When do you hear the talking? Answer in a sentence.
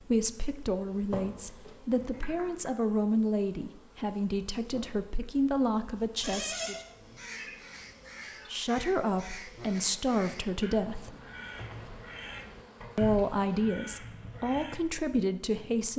You can hear the talking from 0.1 to 6.8 s, from 8.5 to 11.2 s and from 12.9 to 15.9 s.